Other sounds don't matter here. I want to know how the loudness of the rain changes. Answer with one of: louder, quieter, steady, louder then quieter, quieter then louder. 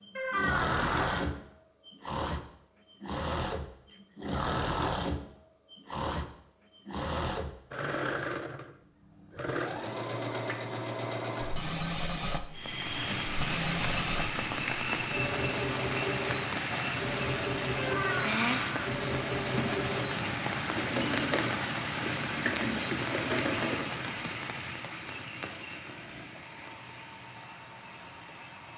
quieter.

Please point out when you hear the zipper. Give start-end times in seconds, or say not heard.
not heard.